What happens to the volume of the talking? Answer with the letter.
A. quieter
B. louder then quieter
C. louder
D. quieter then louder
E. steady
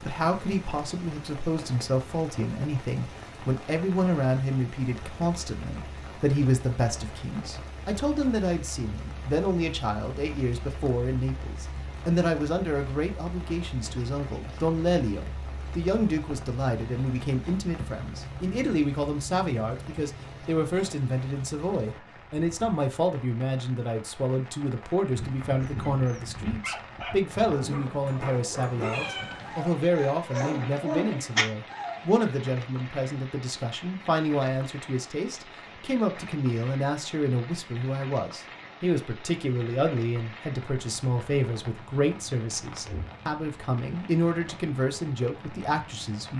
E.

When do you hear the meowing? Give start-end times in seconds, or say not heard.
28.8-29.7.